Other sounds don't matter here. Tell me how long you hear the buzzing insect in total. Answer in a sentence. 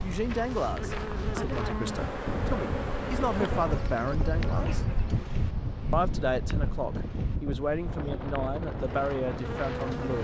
You can hear the buzzing insect for 10 seconds altogether.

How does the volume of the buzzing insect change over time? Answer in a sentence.
The volume of the buzzing insect goes down, then up.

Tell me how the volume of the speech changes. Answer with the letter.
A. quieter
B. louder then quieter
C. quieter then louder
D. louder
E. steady
E.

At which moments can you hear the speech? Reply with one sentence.
You can hear the speech from 0.0 to 4.8 s and from 5.9 to 10.1 s.